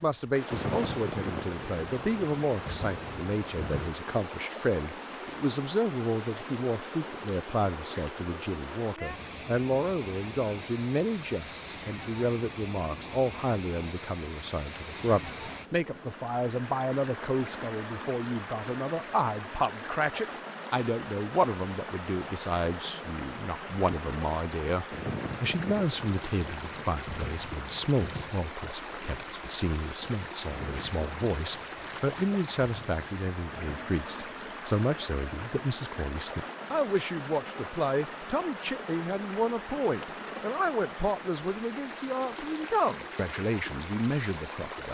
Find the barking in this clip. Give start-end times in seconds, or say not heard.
not heard.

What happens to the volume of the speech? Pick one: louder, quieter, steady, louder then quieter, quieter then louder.
steady.